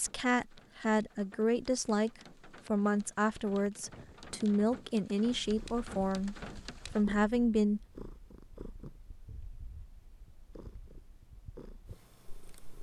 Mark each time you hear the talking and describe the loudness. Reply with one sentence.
The talking can be heard from 0.0 to 6.3 s, at a steady volume; and briefly from 7.0 to 7.8 s.